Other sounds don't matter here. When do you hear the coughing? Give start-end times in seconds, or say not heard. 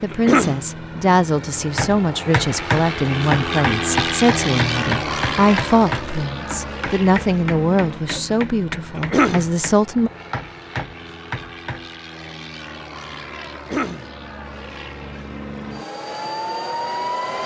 0.1-0.7, 8.9-9.5, 13.5-14.1.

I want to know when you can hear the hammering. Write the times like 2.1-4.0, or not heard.
1.8-11.8.